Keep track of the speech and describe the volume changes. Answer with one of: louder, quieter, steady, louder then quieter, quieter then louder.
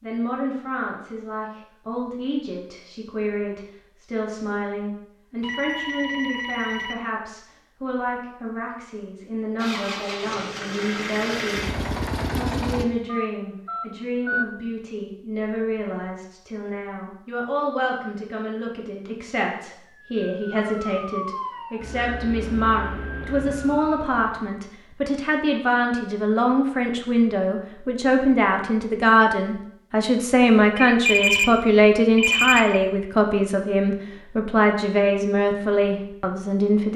louder.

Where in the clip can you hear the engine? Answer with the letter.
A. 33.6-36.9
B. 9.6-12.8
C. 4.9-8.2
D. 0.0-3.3
B.